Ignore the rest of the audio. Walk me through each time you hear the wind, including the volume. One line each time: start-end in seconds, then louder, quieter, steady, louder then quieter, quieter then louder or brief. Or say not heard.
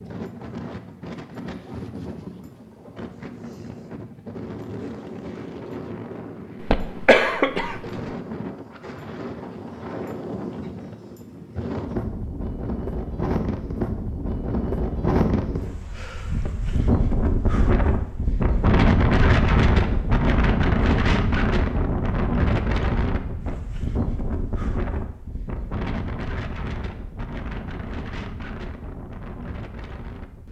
0.0-30.4 louder then quieter.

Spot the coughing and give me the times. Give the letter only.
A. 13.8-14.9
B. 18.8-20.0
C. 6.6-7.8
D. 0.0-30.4
C.